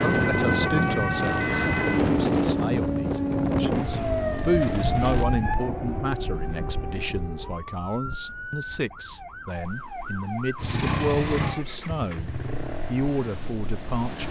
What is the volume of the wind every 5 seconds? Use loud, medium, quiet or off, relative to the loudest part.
loud, quiet, quiet.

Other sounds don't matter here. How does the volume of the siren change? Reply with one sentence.
The loudness of the siren goes down.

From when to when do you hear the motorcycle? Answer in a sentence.
The motorcycle can be heard from 0.0 to 5.2 s and from 10.6 to 14.2 s.